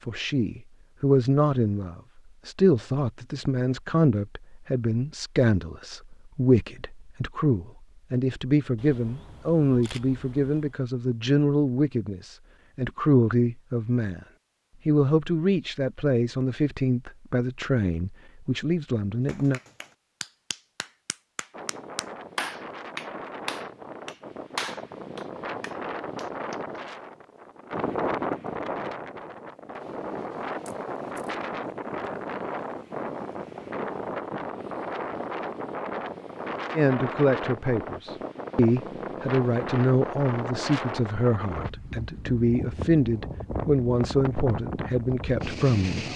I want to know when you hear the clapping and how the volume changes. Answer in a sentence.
You can hear the clapping from 19.2 to 26.8 s, getting louder then quieter.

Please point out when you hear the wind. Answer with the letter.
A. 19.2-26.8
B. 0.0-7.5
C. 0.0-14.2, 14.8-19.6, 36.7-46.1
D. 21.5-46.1
D.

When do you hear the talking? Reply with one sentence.
The talking can be heard from 0.0 to 14.2 s, from 14.8 to 19.6 s and from 36.7 to 46.1 s.